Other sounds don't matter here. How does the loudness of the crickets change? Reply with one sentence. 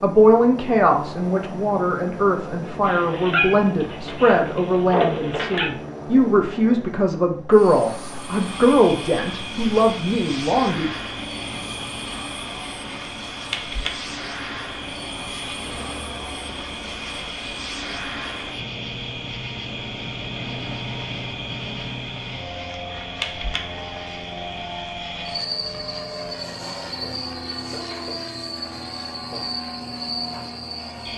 The loudness of the crickets stays about the same.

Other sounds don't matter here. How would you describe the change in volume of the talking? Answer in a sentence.
The volume of the talking stays about the same.